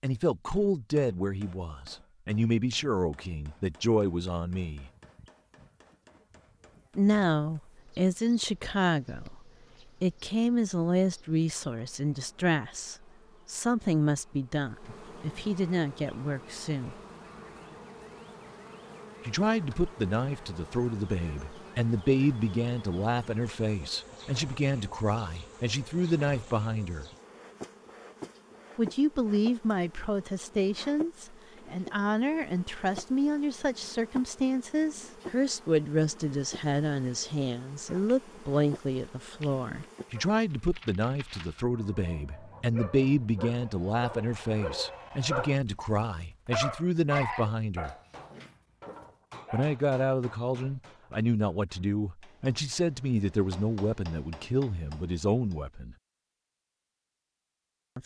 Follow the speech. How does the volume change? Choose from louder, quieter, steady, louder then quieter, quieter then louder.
steady.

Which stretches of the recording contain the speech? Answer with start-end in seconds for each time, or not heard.
0.0-4.9, 7.0-16.9, 19.2-27.1, 28.8-48.0, 49.5-56.0.